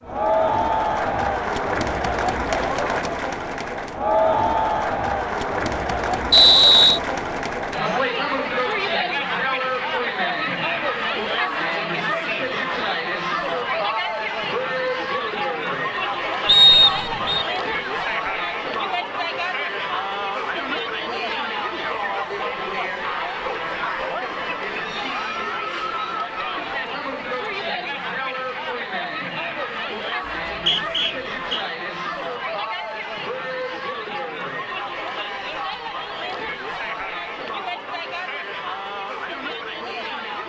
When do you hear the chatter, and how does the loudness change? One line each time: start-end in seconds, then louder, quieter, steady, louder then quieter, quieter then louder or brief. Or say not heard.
0.0-40.4 quieter.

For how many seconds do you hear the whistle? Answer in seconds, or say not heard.
3 s.